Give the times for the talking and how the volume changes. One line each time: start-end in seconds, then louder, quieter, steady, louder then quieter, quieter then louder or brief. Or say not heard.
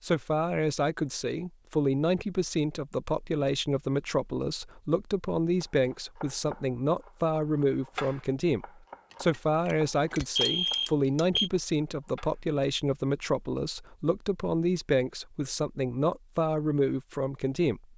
0.0-17.9 steady.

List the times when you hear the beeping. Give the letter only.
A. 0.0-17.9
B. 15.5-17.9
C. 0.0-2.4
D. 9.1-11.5
D.